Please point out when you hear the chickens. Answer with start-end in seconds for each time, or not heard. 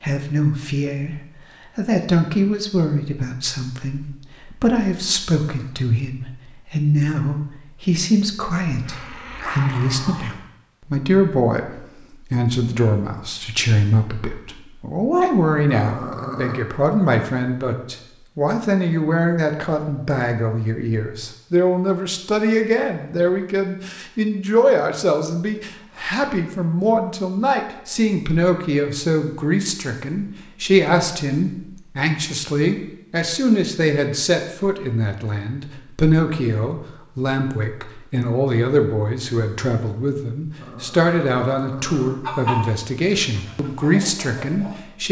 42.2-44.8.